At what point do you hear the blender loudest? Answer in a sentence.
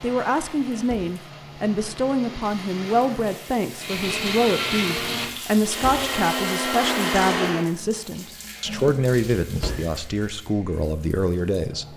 The volume of the blender peaks at 7 seconds.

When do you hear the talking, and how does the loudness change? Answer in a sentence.
You can hear the talking from 0.0 to 11.9 s, at a steady volume.